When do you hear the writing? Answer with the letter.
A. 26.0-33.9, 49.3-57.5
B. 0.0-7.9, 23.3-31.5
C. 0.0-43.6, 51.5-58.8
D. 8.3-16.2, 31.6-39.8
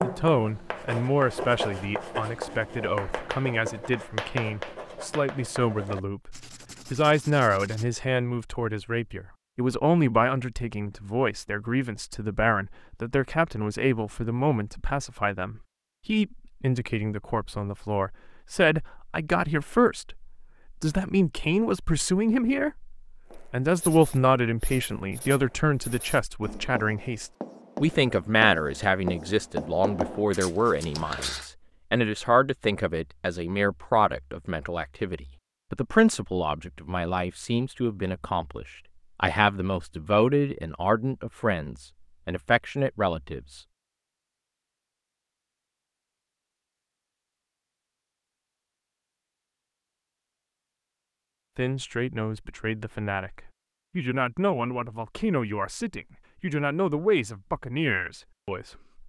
B.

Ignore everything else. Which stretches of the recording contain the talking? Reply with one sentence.
You can hear the talking from 0.0 to 43.6 s and from 51.5 to 58.8 s.